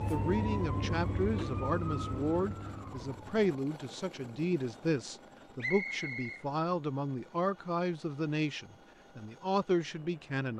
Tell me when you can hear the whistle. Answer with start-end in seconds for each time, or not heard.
5.6-6.5.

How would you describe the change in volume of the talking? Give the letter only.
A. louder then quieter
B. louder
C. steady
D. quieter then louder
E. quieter
C.